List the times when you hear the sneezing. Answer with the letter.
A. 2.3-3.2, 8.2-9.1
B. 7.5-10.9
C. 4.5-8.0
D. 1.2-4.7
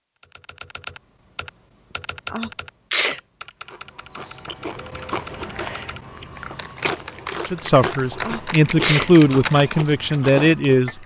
A.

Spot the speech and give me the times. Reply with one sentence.
The speech can be heard from 7.5 to 10.9 s.